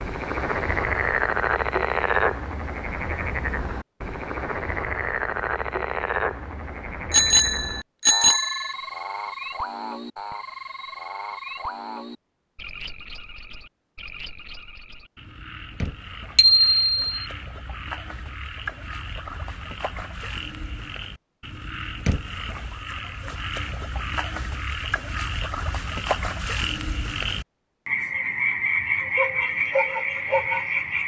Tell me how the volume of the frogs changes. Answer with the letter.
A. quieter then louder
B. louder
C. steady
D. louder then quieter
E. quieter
A.